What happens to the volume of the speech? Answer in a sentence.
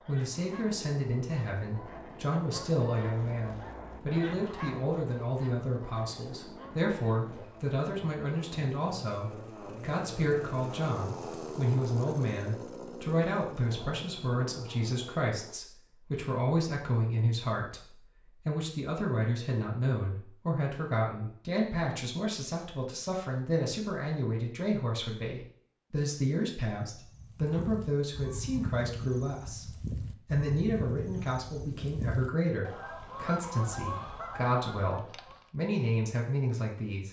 The volume of the speech stays about the same.